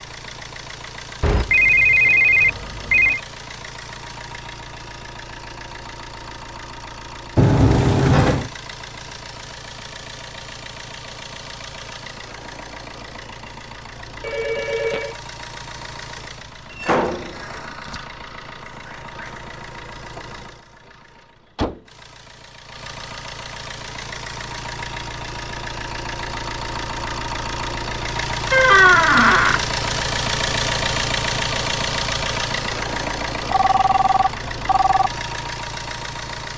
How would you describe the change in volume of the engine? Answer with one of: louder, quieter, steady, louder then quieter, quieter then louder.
louder.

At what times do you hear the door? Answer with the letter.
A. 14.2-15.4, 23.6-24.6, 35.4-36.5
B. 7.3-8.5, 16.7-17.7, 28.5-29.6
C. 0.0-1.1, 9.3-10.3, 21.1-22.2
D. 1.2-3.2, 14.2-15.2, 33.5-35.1
B.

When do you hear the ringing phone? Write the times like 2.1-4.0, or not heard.
1.2-3.2, 14.2-15.2, 33.5-35.1.